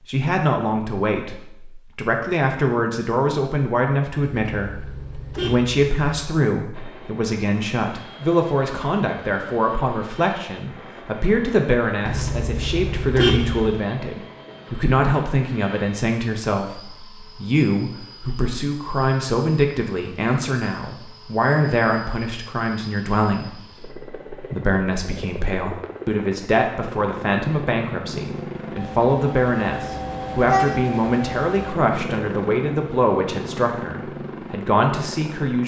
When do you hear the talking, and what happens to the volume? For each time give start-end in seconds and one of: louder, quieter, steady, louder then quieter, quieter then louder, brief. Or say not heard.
0.1-35.6 steady.